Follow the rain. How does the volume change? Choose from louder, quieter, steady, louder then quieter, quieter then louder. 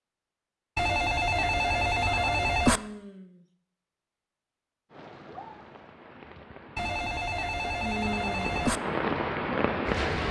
louder.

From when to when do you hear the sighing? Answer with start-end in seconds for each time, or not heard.
2.6-3.5, 7.8-8.5.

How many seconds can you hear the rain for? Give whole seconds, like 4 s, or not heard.
5 s.